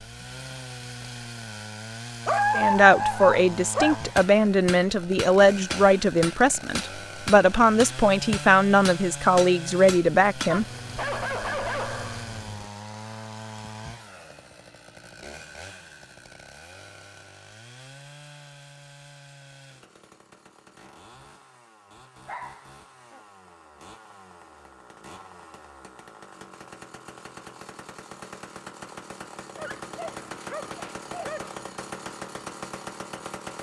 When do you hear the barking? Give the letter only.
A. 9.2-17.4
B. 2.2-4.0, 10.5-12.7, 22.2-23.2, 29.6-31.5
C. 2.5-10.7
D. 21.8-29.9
B.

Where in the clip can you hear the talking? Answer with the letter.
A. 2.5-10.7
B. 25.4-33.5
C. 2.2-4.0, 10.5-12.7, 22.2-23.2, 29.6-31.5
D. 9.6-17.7
A.